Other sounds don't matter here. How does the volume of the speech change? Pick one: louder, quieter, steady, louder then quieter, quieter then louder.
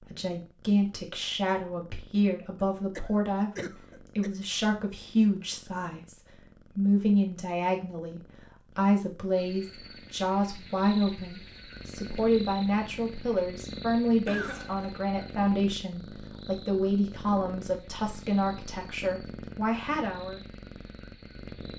steady.